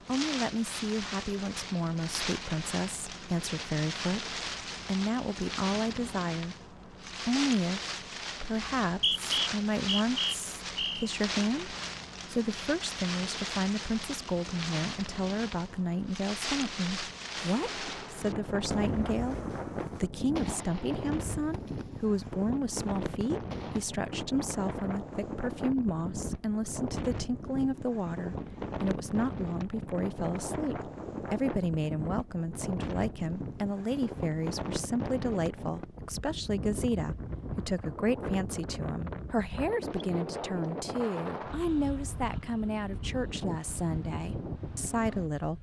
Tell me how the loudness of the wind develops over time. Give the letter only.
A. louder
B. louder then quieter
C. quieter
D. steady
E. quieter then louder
D.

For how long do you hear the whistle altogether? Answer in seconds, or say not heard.
2 s.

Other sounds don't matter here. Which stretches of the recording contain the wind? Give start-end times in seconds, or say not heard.
0.0-45.5.